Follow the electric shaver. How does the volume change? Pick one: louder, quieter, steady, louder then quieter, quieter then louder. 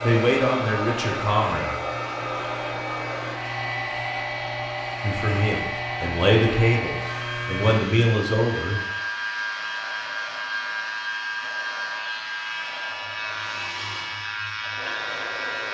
steady.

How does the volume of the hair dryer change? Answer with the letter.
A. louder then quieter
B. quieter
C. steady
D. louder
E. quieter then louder
B.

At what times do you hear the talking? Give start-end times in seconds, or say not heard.
0.0-1.6, 5.0-8.8.